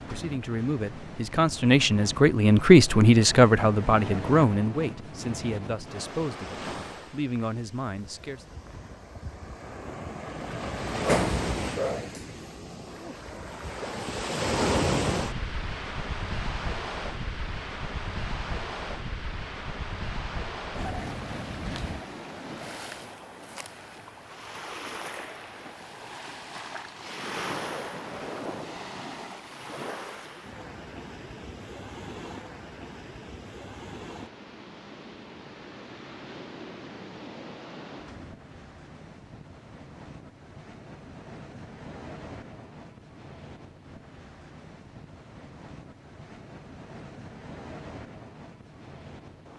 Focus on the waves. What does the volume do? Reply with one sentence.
The volume of the waves goes up, then down.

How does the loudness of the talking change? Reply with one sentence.
The loudness of the talking goes up, then down.